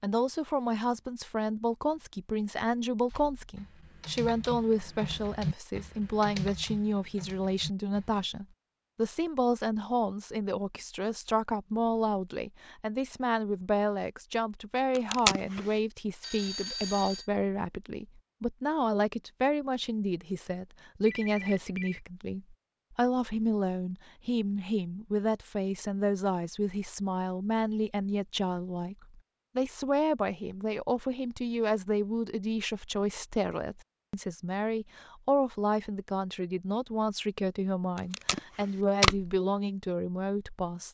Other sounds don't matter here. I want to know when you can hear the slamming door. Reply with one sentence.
The slamming door can't be heard in this clip.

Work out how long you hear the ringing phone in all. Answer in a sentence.
The ringing phone can be heard for 2 seconds in total.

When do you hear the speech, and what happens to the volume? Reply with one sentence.
The speech can be heard from 0.0 to 40.8 s, at a steady volume.